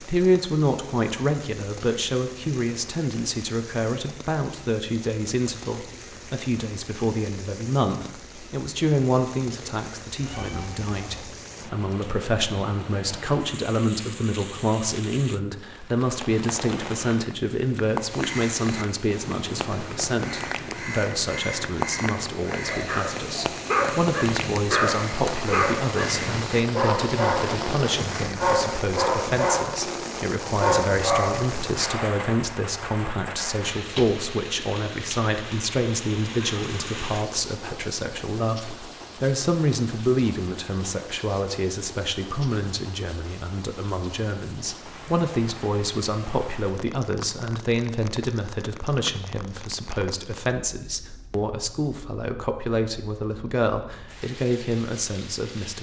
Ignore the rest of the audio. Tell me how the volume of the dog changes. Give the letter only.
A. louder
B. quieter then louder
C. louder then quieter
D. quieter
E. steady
E.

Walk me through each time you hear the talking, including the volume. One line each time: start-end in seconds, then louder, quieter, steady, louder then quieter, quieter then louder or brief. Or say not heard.
0.0-55.7 steady.